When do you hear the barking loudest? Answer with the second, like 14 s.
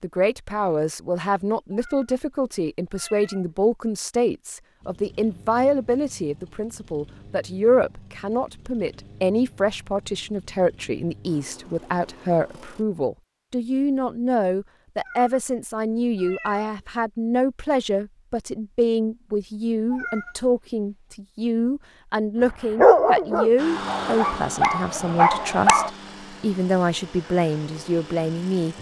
23 s.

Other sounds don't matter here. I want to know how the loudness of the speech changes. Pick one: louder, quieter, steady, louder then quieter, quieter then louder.
steady.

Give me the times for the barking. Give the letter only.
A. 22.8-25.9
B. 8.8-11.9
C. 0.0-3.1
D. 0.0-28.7
A.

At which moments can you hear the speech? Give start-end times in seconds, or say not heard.
0.0-28.7.